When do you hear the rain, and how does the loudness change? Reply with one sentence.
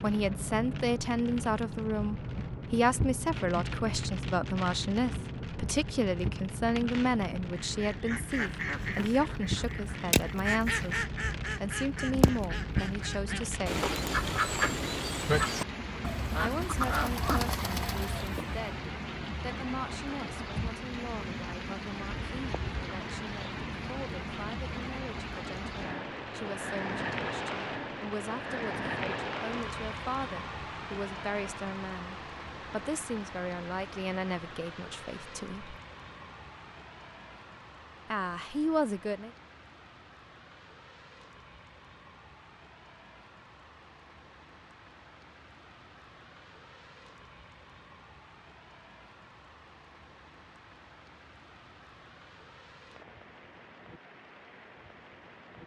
You can hear the rain from 0.0 to 55.6 s, getting quieter.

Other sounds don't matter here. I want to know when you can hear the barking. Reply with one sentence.
The barking can't be heard in this clip.